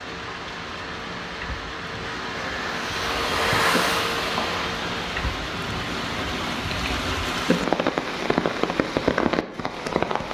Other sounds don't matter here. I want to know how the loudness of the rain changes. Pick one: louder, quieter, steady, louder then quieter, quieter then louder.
louder.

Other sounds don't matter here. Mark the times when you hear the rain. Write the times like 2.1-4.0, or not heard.
0.0-10.2.